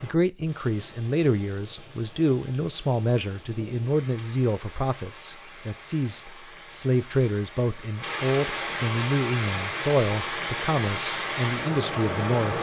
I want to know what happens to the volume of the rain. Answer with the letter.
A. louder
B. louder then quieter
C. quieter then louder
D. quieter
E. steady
A.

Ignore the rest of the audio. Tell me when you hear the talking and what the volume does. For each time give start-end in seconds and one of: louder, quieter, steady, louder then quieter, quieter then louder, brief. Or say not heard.
0.0-12.5 steady.